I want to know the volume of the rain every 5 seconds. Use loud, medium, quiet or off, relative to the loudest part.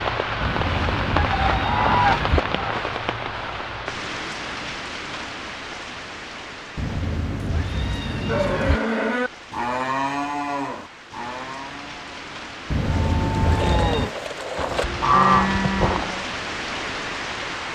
loud, medium, medium, loud.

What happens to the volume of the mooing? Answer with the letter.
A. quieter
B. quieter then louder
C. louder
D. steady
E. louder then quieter
B.